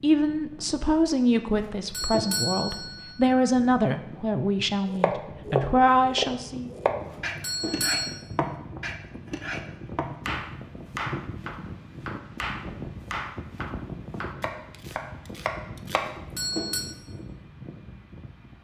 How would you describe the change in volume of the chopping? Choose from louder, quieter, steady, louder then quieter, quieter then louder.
quieter.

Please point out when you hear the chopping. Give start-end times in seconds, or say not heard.
4.9-16.1.